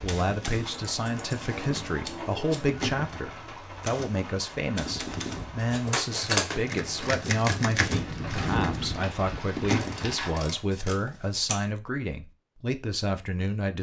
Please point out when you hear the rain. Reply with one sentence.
You can hear the rain from 0.0 to 10.6 s.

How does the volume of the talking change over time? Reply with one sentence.
The volume of the talking stays about the same.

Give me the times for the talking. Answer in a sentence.
You can hear the talking from 0.0 to 13.7 s.